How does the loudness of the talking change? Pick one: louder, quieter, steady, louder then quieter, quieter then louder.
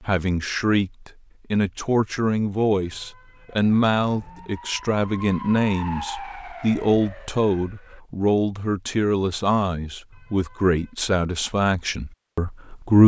steady.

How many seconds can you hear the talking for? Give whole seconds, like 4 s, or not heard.
13 s.